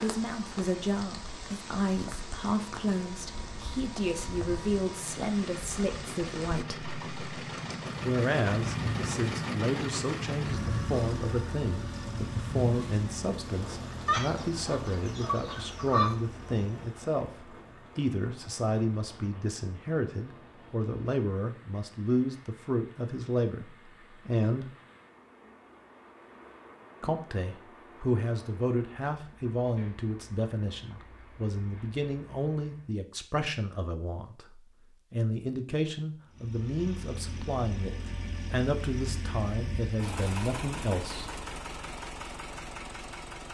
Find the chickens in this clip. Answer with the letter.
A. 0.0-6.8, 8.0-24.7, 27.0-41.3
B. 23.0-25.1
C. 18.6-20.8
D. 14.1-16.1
D.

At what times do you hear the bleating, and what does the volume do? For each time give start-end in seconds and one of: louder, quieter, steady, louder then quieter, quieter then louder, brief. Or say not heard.
not heard.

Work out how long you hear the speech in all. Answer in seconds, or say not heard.
38 s.